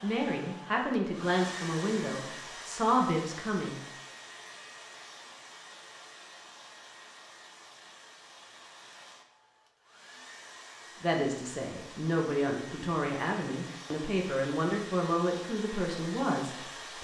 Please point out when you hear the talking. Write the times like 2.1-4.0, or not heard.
0.0-3.8, 11.0-16.9.